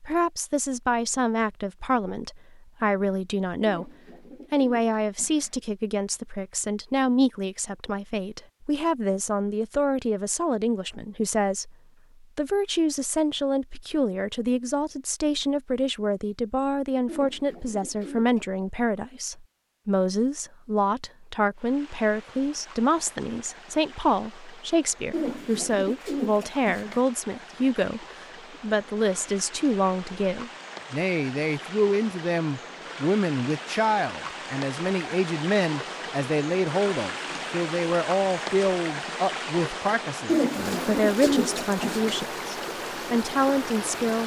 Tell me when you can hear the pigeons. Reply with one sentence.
The pigeons can be heard from 3.6 to 5.5 s, from 17.1 to 18.6 s, from 25.1 to 27.1 s and from 40.2 to 42.2 s.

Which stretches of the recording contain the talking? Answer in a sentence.
You can hear the talking from 0.0 to 3.9 s and from 4.5 to 44.2 s.